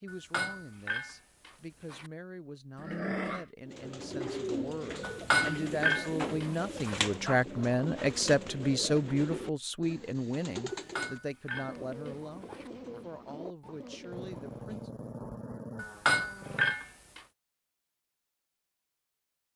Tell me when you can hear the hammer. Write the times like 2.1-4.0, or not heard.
0.1-2.1, 5.1-7.0, 10.8-12.7, 15.8-17.2.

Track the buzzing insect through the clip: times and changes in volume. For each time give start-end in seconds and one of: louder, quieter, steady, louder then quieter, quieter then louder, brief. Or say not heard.
not heard.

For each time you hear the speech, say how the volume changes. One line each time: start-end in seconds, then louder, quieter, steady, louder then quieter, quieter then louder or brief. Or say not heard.
0.0-14.9 louder then quieter.